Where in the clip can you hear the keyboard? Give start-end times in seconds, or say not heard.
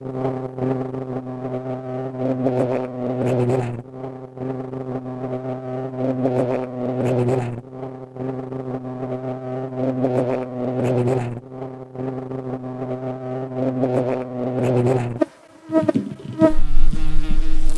15.7-17.4.